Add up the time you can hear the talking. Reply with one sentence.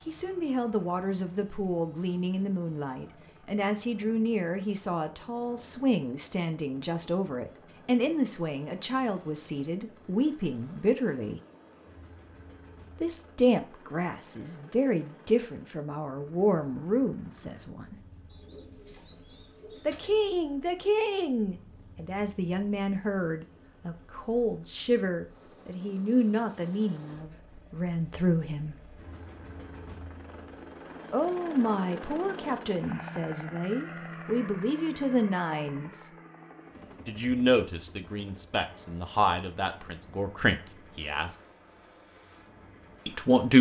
You can hear the talking for 35 seconds altogether.